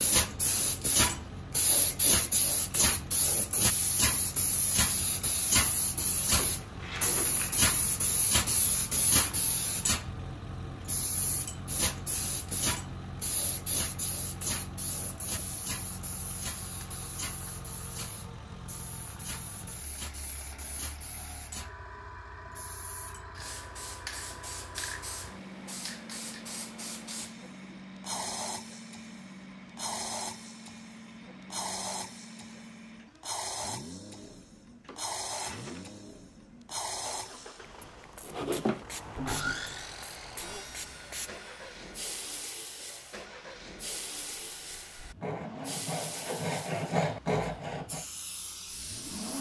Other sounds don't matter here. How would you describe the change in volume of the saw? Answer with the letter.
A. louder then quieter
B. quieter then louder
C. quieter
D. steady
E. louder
B.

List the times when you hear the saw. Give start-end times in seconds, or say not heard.
38.2-48.0.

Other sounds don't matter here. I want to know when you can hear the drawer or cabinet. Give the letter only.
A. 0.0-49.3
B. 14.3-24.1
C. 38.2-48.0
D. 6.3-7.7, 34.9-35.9
D.